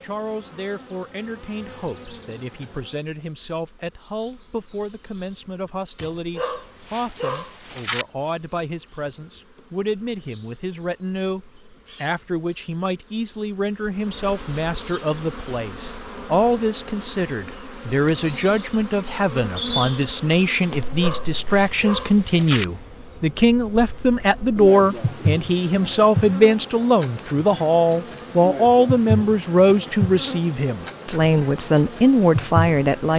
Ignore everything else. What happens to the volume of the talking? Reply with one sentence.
The volume of the talking goes up.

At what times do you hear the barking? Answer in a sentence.
You can hear the barking from 6.3 to 8.1 s and from 20.9 to 22.6 s.